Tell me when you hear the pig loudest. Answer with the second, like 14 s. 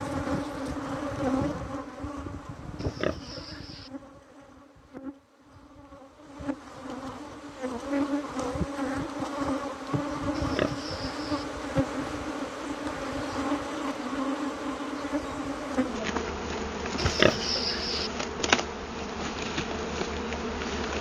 17 s.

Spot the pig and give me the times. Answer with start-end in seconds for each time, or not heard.
2.8-3.9, 10.3-11.4, 16.9-18.1.